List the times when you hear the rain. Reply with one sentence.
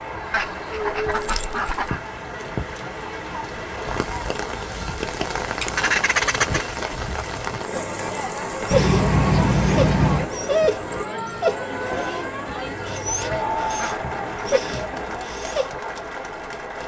You can hear the rain from 0.0 to 16.8 s.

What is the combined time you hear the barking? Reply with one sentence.
You can hear the barking for 7 seconds altogether.